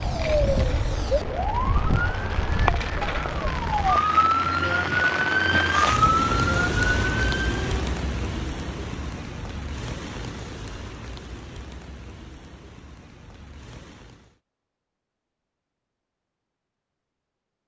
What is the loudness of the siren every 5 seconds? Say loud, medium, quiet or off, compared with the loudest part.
loud, loud, off, off.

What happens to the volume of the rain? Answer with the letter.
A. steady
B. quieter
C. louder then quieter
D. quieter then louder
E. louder
C.